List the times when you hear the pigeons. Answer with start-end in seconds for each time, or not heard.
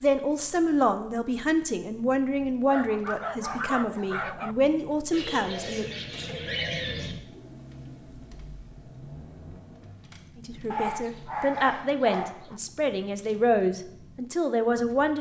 5.1-7.2.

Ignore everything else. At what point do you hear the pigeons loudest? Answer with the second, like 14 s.
7 s.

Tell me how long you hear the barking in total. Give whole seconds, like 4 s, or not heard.
4 s.